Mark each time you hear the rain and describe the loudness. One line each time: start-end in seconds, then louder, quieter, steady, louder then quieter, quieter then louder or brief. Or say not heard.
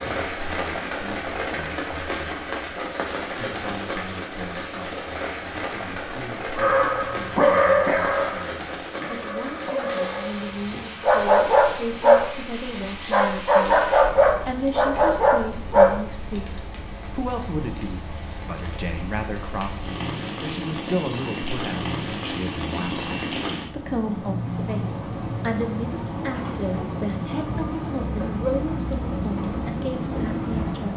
0.0-30.9 quieter then louder.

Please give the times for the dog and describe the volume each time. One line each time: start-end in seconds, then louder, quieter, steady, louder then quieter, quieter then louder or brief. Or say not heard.
6.5-16.2 quieter then louder.